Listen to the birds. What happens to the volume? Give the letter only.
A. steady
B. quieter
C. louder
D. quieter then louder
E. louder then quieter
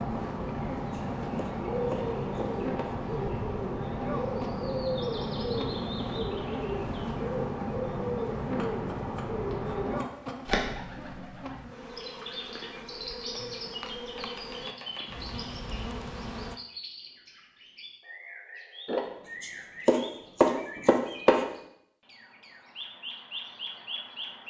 B.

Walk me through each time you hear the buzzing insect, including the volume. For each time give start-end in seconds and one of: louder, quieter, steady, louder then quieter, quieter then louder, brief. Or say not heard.
0.0-16.6 steady.